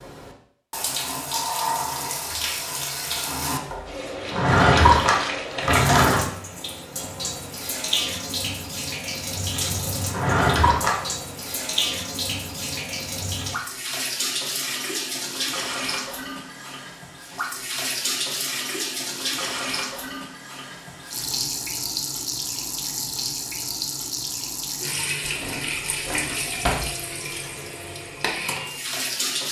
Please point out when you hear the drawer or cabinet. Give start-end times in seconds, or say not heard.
4.2-6.2, 10.1-11.1, 25.2-26.9.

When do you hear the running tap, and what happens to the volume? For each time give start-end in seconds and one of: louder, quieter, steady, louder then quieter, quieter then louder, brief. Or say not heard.
0.0-29.4 steady.